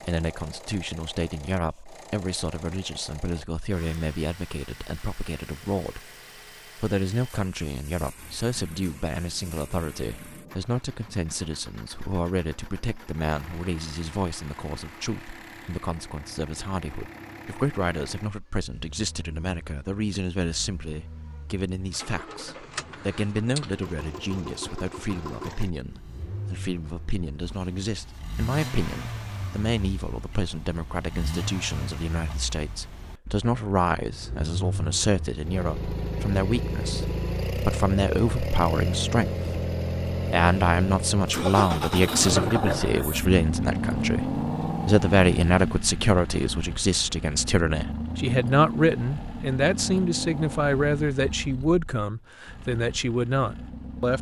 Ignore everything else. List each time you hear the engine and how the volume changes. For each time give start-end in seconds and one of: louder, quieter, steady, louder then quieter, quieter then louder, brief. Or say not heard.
0.0-54.1 louder.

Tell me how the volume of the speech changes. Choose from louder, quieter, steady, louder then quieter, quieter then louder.
louder.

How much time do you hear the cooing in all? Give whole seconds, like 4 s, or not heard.
not heard.